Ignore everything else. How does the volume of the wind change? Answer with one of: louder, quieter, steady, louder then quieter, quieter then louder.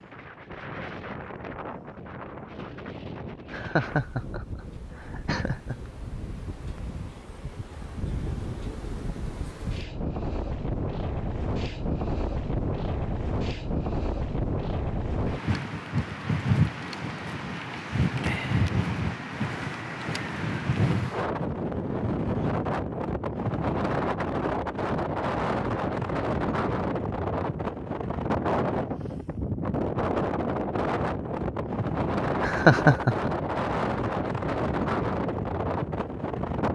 louder.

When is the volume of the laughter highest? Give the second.
33 s.